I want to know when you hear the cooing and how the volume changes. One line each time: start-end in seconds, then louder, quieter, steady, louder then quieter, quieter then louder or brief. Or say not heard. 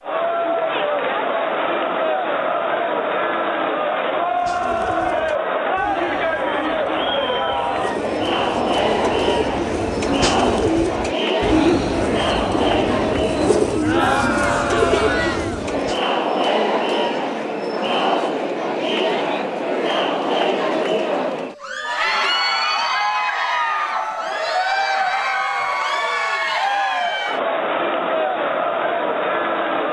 4.3-16.0 louder.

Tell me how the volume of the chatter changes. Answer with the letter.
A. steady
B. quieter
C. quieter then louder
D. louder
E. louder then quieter
A.